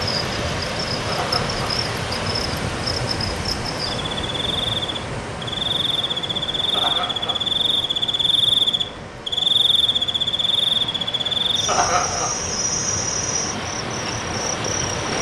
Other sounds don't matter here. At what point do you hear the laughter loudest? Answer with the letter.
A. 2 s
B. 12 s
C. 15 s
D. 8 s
B.